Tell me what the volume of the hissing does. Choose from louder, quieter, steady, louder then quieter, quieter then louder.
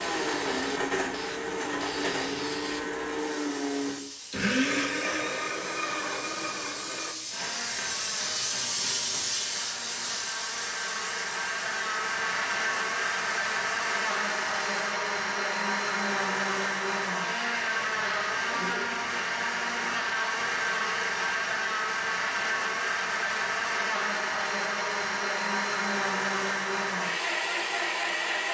louder then quieter.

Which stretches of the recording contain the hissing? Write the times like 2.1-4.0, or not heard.
0.0-14.8.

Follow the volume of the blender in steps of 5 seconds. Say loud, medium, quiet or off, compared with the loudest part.
loud, medium, loud, loud, loud, loud.